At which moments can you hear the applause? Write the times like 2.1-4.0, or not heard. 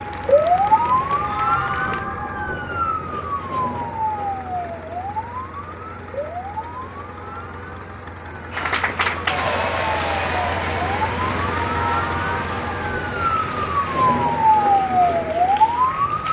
0.0-2.0, 8.5-16.2.